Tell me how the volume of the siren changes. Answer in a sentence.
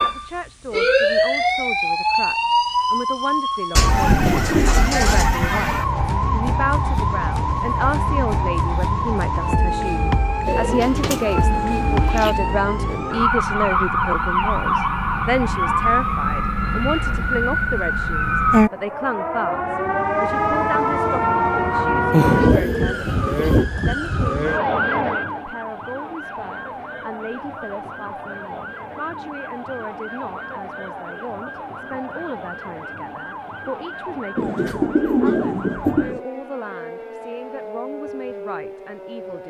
The loudness of the siren goes down.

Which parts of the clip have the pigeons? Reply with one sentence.
The pigeons can be heard from 3.8 to 5.4 s, from 10.4 to 12.3 s, from 22.1 to 23.6 s and from 34.4 to 36.2 s.